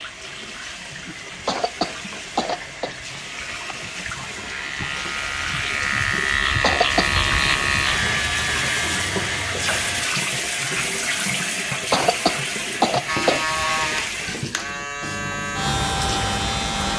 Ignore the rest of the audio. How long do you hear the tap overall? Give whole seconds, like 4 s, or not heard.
17 s.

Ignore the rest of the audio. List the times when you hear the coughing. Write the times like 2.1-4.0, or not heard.
1.4-2.9, 6.6-7.2, 11.9-13.7.